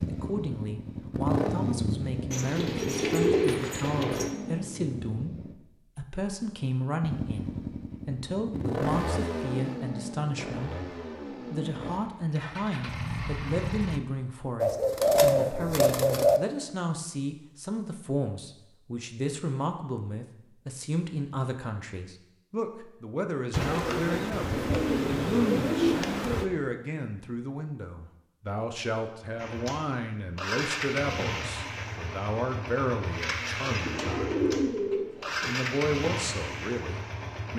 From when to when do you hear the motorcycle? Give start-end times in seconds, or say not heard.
0.0-5.5, 7.0-14.0, 29.4-37.5.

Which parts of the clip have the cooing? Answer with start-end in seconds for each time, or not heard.
2.3-4.3, 14.6-16.4, 23.5-26.4, 33.7-35.5.